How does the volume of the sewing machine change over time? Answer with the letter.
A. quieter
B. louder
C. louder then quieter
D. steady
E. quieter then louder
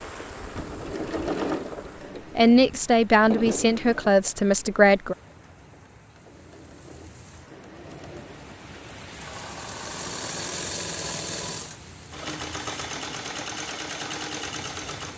E.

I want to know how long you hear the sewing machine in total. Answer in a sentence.
The sewing machine can be heard for 15 seconds in total.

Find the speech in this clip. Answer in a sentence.
You can hear the speech from 2.4 to 5.2 s.